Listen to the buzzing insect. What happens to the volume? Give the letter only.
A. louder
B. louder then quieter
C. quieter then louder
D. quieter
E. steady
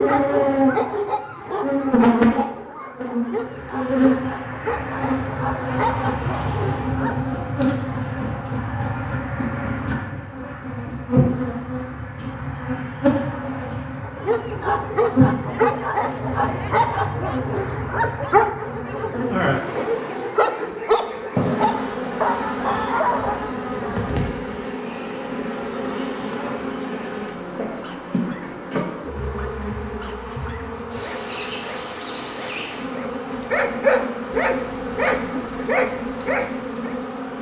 D.